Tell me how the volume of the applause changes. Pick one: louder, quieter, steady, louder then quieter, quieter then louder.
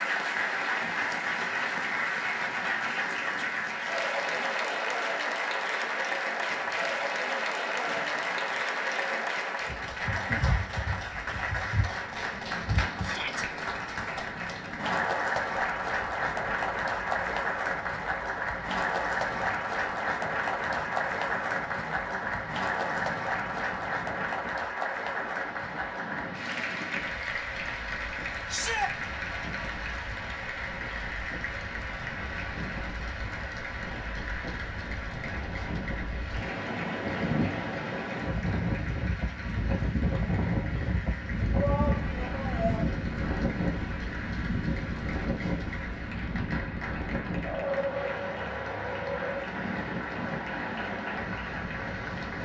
quieter.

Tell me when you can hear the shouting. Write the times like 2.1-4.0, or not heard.
13.0-13.4, 28.4-28.9, 41.5-42.9.